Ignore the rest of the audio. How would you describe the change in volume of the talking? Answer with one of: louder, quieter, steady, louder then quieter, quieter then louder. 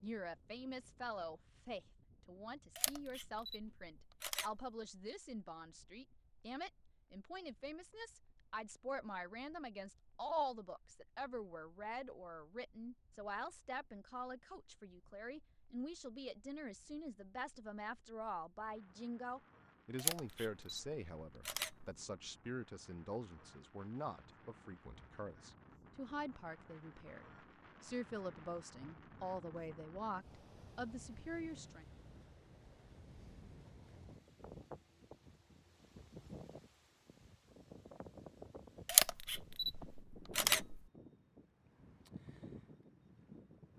steady.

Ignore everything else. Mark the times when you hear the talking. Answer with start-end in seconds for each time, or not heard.
0.0-31.9.